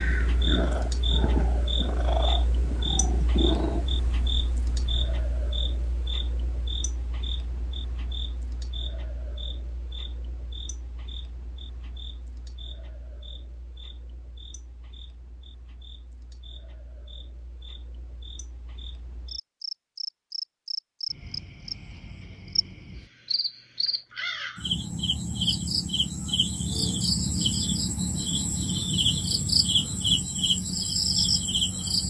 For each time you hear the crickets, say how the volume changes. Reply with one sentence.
The crickets can be heard from 0.0 to 32.0 s, getting quieter then louder.